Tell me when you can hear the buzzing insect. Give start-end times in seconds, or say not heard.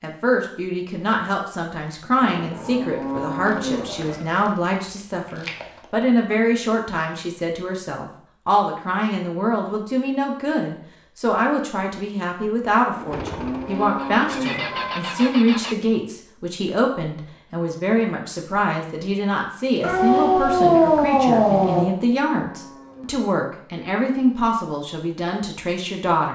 not heard.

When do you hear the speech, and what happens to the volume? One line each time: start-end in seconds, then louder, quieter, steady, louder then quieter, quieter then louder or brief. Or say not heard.
0.0-26.3 steady.